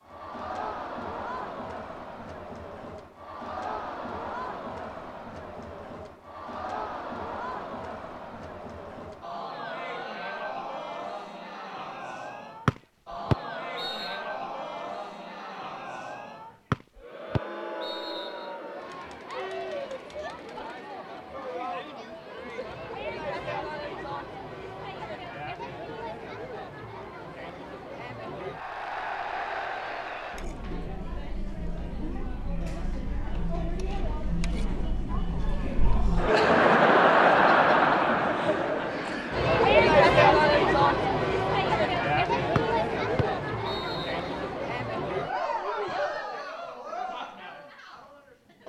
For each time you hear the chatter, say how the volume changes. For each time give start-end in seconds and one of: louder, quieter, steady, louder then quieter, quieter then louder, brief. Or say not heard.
0.0-48.6 louder.